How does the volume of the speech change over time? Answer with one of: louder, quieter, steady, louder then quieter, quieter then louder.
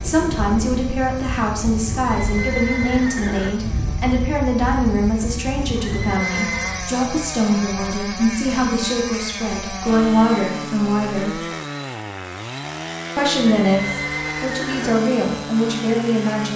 steady.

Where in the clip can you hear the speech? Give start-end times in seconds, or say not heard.
0.0-11.4, 13.2-16.5.